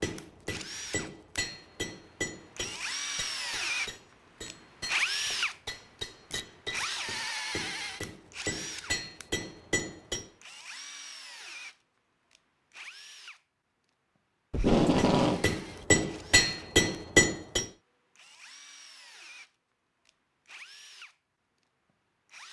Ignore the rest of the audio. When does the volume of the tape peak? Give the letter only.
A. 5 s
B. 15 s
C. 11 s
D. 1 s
B.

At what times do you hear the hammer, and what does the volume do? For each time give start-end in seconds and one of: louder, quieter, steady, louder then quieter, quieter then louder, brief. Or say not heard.
0.0-10.3 quieter then louder
14.9-17.7 brief.